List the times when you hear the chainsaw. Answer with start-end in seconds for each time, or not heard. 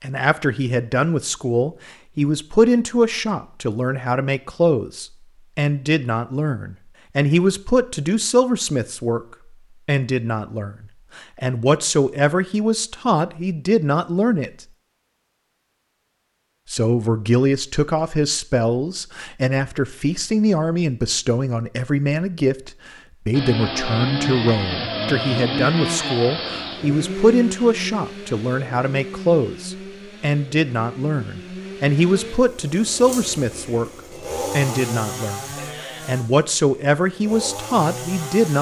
23.3-38.5.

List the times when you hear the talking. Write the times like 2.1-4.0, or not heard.
0.0-9.2, 9.8-14.5, 16.7-33.9, 34.5-38.5.